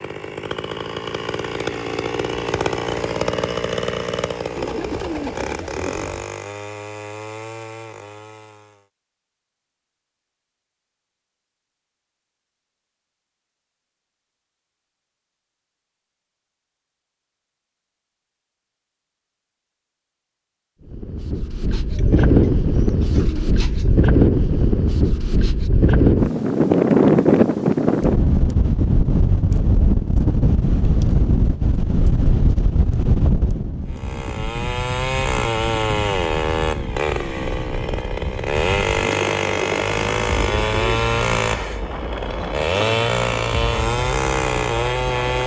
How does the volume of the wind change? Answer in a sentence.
The loudness of the wind goes down.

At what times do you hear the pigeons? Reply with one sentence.
You can hear the pigeons from 4.5 to 6.3 s, from 21.7 to 23.9 s and from 39.0 to 41.0 s.